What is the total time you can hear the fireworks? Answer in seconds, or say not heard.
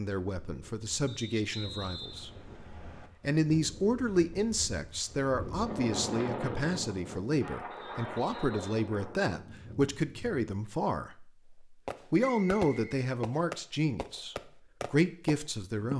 4 s.